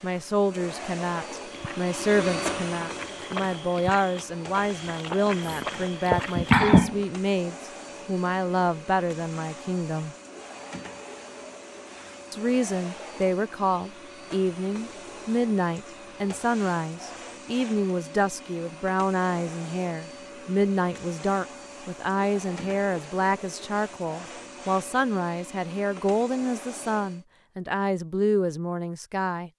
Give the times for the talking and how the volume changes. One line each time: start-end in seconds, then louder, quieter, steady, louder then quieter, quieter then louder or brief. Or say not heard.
0.0-10.2 steady
12.3-29.5 steady.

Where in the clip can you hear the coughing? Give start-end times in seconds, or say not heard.
5.4-7.0.